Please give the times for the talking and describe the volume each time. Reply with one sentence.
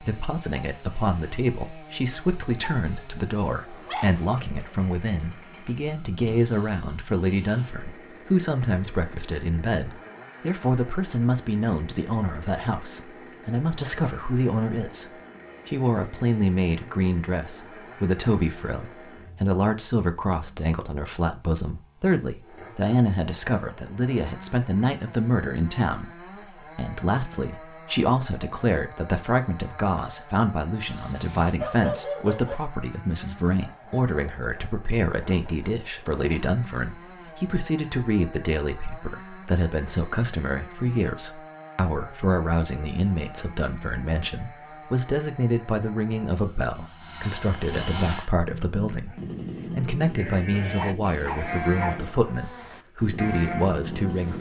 The talking can be heard from 0.0 to 54.3 s, at a steady volume.